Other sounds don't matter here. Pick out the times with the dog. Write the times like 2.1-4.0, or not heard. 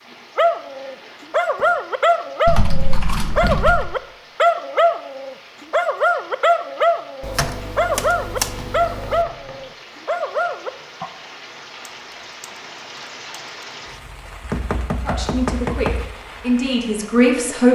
0.3-11.1.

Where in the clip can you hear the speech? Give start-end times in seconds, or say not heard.
15.1-17.7.